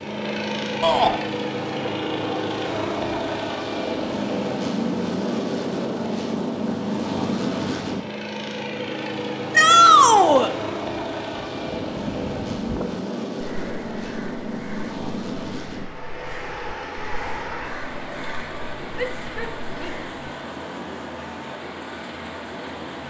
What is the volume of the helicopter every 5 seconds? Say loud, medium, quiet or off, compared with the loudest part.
loud, loud, loud, medium, medium.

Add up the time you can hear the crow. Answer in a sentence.
The crow can be heard for 9 seconds in total.